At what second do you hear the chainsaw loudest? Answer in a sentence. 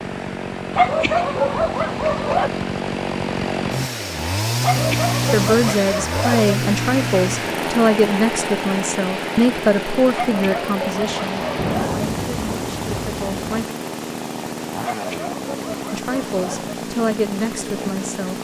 The volume of the chainsaw peaks at 5 seconds.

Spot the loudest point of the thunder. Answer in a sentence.
The loudest moment of the thunder is at 12 seconds.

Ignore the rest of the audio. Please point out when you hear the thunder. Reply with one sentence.
You can hear the thunder from 11.2 to 13.7 s.